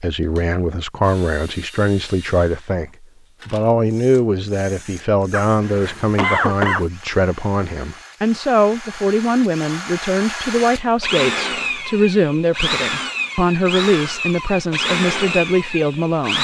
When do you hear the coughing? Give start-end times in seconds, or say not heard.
5.3-6.8.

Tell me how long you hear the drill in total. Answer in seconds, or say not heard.
16 s.